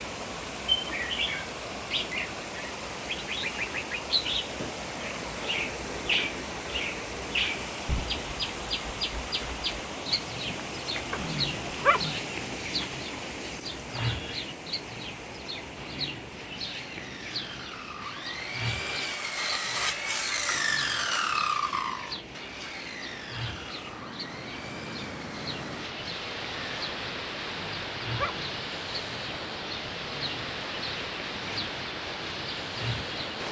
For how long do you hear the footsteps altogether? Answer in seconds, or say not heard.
not heard.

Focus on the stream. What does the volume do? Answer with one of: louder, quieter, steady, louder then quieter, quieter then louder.
quieter then louder.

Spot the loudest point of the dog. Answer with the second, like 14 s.
12 s.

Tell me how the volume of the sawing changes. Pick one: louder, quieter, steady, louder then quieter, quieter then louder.
louder then quieter.